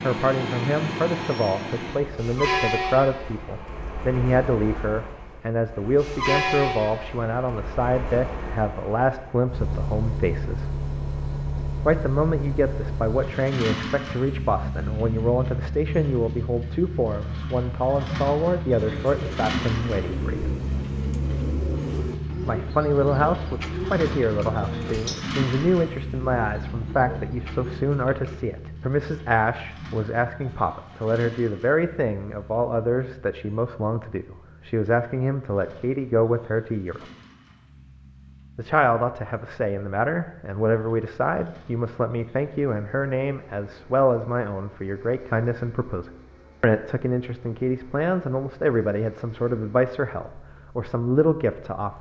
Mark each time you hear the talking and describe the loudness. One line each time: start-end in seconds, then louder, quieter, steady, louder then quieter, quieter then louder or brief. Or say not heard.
0.0-10.7 steady
11.8-20.6 steady
22.4-37.0 steady
38.5-51.9 steady.